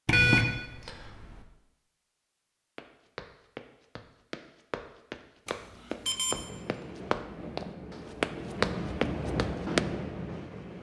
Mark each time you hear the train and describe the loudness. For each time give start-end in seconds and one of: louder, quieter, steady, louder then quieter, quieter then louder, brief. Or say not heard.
6.3-10.7 louder.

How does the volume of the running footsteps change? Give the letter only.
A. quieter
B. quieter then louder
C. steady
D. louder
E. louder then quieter
D.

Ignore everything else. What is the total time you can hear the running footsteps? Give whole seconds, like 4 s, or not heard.
7 s.